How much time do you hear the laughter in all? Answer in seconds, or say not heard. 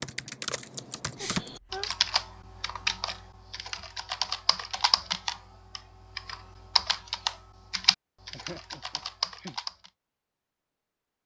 2 s.